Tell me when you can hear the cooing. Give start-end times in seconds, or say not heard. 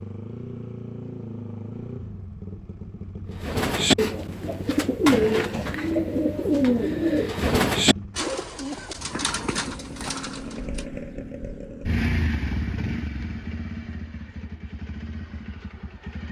3.4-10.8.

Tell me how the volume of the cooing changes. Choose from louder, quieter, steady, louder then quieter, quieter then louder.
quieter.